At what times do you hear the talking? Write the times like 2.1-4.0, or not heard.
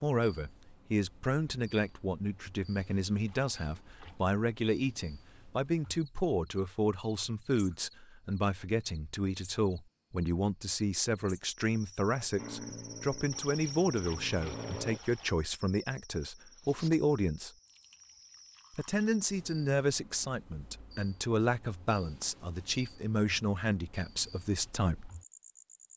0.0-17.5, 18.8-25.1.